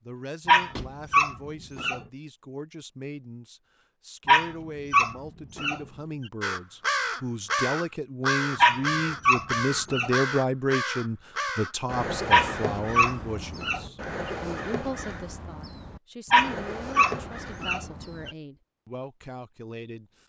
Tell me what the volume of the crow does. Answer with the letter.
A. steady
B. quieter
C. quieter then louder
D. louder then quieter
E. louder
B.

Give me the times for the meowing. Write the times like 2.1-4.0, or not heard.
not heard.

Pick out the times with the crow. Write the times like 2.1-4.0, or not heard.
6.4-18.4.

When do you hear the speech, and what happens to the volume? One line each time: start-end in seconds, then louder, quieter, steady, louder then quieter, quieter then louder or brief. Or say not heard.
0.0-20.2 louder then quieter.